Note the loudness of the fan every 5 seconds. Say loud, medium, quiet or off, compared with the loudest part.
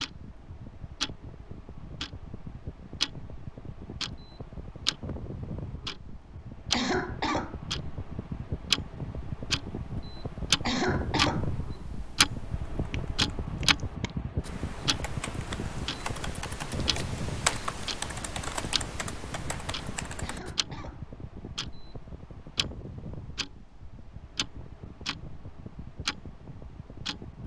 medium, loud, loud, loud, medium, medium.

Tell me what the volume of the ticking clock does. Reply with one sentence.
The loudness of the ticking clock goes up, then down.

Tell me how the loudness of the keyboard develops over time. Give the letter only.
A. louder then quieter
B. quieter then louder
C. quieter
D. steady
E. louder
A.